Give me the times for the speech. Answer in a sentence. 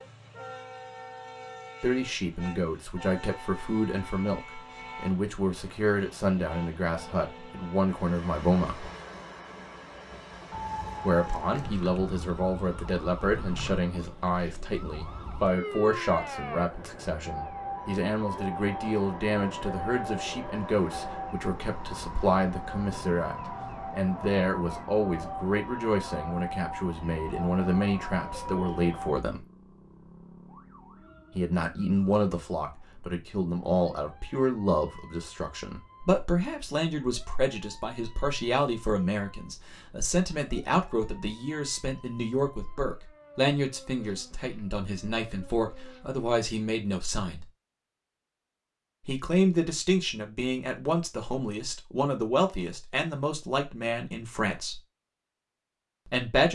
The speech can be heard from 1.8 to 8.9 s, from 11.0 to 29.4 s, from 31.4 to 47.5 s, from 49.0 to 54.8 s and from 56.0 to 56.5 s.